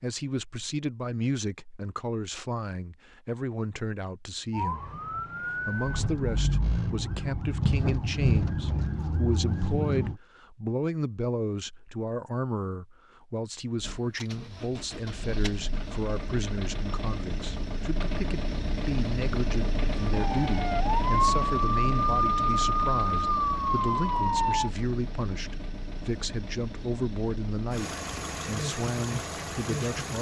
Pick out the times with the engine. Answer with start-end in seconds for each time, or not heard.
13.8-30.1.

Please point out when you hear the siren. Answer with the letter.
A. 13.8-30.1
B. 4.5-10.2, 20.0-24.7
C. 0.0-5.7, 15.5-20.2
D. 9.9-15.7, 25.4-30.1
B.